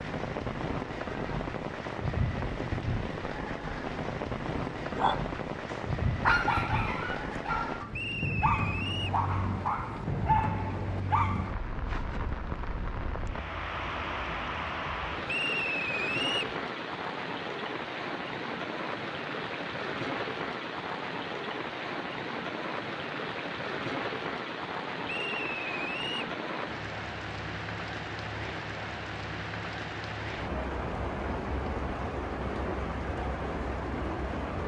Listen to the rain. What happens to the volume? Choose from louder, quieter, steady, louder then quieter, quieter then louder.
steady.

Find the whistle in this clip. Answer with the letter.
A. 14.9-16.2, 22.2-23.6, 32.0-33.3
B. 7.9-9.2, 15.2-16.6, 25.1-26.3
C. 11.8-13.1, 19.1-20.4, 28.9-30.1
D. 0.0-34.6
B.